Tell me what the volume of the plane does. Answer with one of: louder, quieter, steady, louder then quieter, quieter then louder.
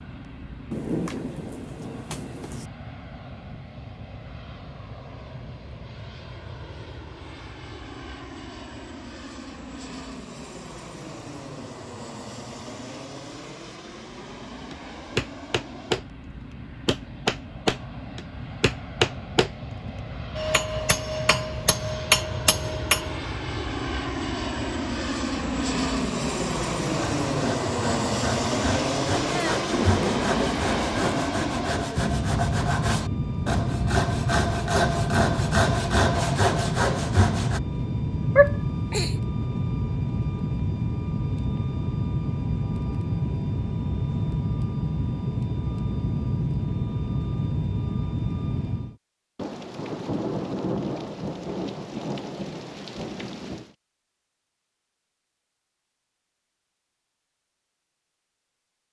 louder.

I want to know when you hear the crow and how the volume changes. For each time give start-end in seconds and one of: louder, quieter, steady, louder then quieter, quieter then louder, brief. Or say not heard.
not heard.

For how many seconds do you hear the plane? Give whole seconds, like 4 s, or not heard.
49 s.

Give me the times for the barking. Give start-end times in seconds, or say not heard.
38.4-39.1.